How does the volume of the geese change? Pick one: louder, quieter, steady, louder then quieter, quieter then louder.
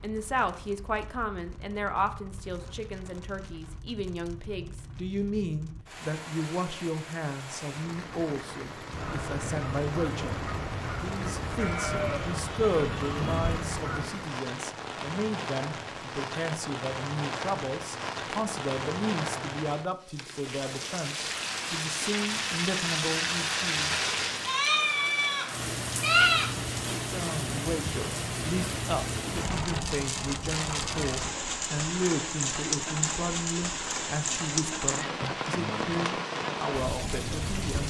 steady.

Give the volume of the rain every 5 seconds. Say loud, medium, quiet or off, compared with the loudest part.
quiet, medium, medium, loud, loud, loud, loud, loud.